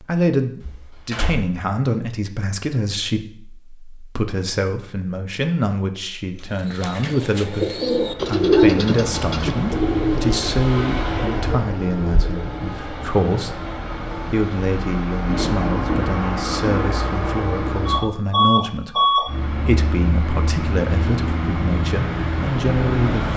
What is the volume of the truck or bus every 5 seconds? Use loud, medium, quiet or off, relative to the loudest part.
off, medium, medium, loud, loud.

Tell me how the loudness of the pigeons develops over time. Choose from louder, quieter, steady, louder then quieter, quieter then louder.
louder then quieter.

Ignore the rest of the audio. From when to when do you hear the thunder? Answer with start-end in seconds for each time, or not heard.
15.2-17.1.